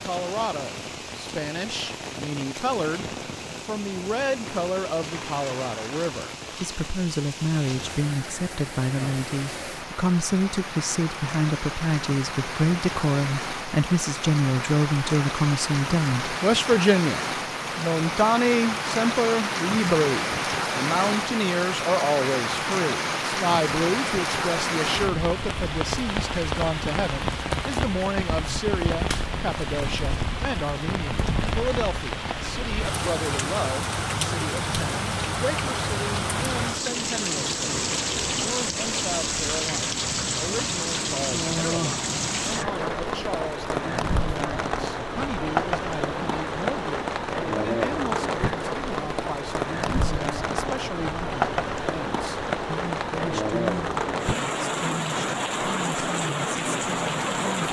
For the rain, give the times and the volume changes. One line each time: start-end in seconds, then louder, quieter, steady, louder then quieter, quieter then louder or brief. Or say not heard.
0.0-57.6 louder.